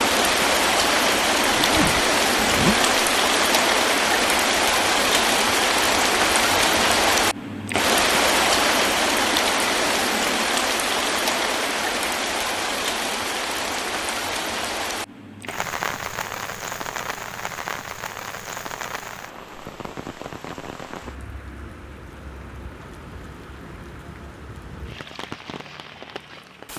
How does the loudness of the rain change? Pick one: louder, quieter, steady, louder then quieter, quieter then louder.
quieter.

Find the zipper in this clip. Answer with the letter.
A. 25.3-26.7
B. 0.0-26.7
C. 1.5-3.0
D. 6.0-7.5
C.